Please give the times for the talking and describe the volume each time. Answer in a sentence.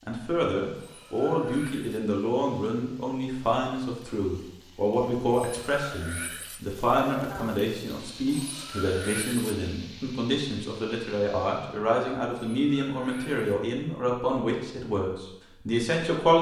You can hear the talking from 0.1 to 16.3 s, at a steady volume.